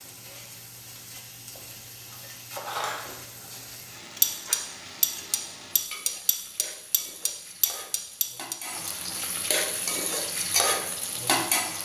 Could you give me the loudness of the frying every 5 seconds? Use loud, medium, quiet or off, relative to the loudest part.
quiet, medium, loud.